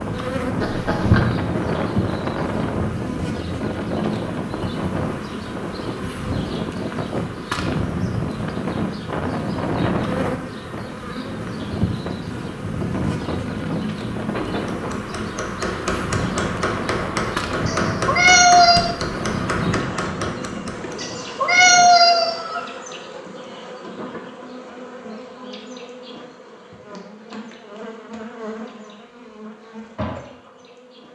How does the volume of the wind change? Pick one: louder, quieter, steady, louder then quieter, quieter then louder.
quieter.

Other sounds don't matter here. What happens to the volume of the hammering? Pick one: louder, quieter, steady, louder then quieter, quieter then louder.
steady.